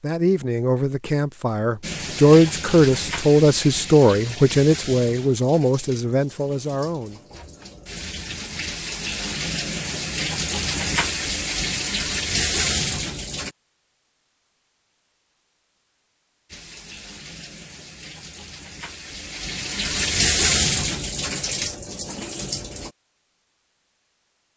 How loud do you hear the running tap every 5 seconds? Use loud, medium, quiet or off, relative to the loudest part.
medium, medium, loud, medium, loud.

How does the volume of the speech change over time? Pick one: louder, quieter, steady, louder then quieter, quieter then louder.
louder then quieter.